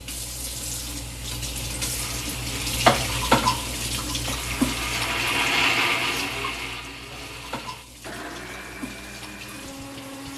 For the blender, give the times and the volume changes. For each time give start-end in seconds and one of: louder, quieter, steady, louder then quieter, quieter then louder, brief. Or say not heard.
1.9-10.3 louder then quieter.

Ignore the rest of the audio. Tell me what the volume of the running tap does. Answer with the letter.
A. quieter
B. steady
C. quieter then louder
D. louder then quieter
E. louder
D.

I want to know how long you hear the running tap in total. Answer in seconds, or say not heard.
10 s.